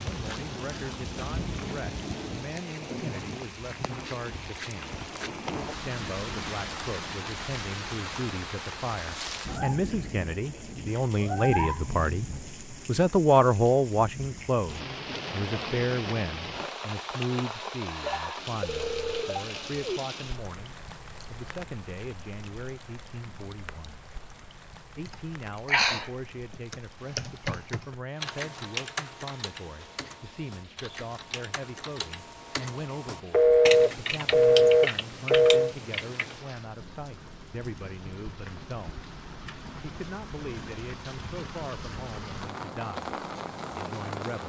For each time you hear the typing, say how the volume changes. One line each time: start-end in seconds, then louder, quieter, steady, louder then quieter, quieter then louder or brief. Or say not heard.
25.1-36.4 quieter then louder.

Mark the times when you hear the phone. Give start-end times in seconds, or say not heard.
18.0-20.0, 33.3-35.8.